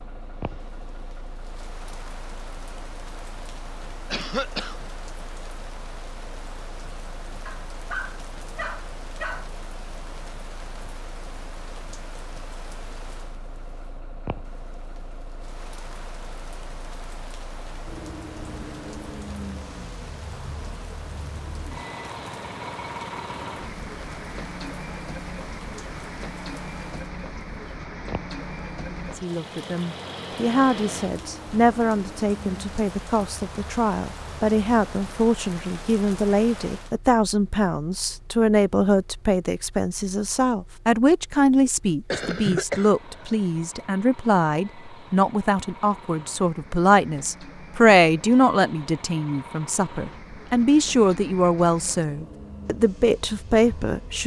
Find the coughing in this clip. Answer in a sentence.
You can hear the coughing from 4.1 to 4.8 s and from 41.6 to 43.4 s.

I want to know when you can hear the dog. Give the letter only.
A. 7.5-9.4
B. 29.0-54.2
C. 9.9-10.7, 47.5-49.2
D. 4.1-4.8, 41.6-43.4
A.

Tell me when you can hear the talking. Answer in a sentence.
The talking can be heard from 29.0 to 54.2 s.